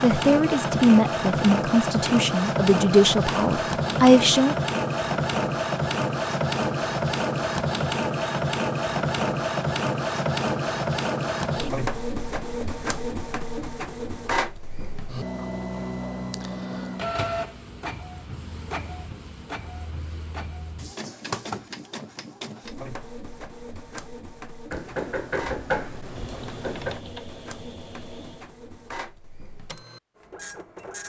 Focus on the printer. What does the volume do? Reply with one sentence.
The loudness of the printer goes down.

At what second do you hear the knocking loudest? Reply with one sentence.
The loudest moment of the knocking is at 26 seconds.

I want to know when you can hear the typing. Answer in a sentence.
The typing can be heard from 26.1 to 28.6 s.